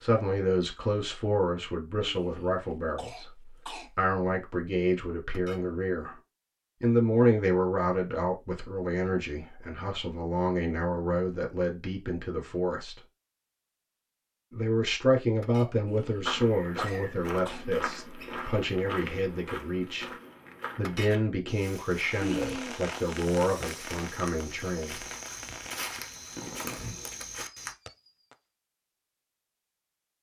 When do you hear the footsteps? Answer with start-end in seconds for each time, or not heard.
16.2-27.8.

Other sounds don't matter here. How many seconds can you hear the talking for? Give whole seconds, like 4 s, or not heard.
22 s.